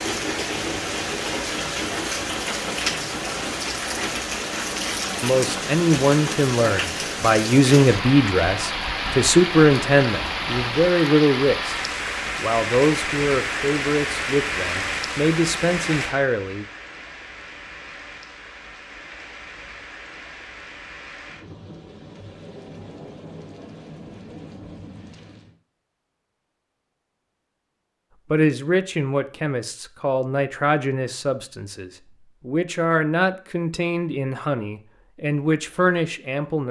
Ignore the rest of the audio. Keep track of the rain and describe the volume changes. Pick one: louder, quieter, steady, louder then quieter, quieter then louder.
quieter.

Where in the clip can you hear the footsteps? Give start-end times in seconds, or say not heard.
not heard.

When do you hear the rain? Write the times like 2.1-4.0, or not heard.
0.0-25.6.